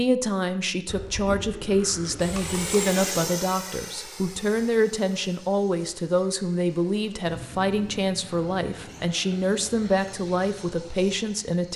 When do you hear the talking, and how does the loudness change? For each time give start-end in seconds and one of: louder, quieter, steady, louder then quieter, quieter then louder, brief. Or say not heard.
0.0-11.7 steady.